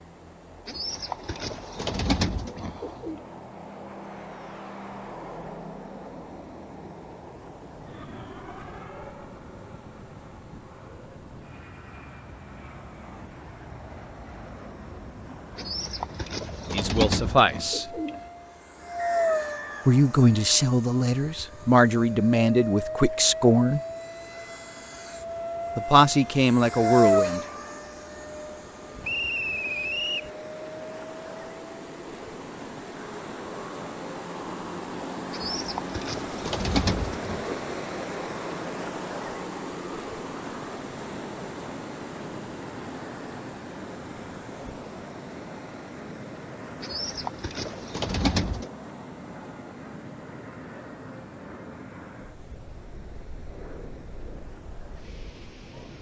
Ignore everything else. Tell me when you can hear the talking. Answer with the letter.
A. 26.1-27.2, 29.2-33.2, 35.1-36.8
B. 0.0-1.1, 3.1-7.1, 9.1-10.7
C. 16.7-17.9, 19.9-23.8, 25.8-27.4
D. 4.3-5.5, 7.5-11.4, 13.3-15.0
C.